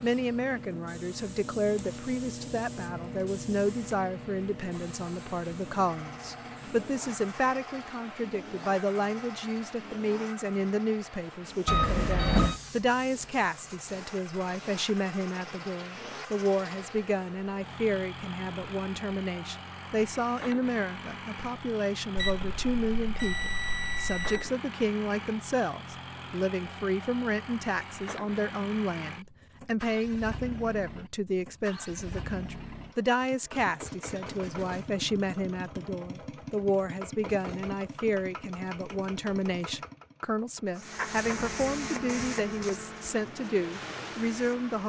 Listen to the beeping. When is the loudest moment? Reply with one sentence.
The volume of the beeping peaks at 12 seconds.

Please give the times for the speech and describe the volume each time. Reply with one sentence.
The speech can be heard from 0.0 to 44.8 s, at a steady volume.